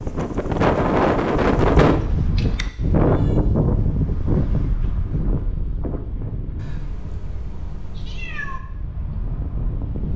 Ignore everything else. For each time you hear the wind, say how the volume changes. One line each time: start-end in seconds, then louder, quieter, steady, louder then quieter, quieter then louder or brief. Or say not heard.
0.0-10.1 quieter.